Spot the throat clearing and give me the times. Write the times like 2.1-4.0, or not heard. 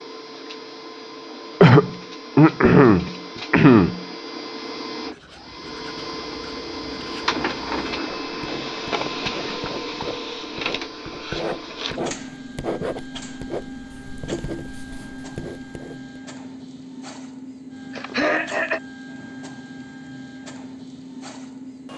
1.6-4.0, 17.9-18.8.